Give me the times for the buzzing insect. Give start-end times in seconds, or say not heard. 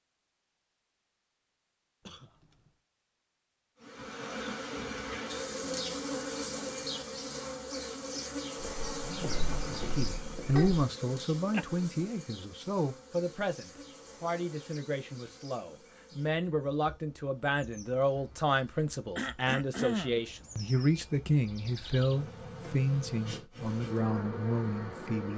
3.8-25.3.